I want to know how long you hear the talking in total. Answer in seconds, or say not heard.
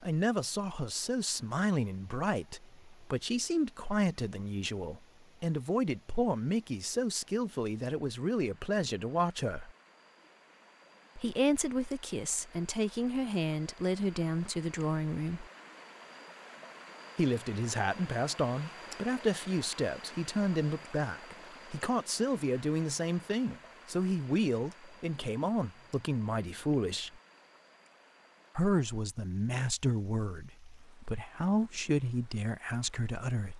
29 s.